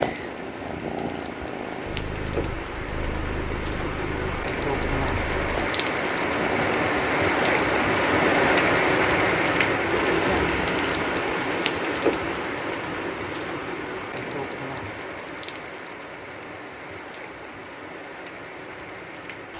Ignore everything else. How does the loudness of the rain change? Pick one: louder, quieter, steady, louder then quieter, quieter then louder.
louder then quieter.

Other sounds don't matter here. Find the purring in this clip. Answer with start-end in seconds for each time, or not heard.
0.0-8.6.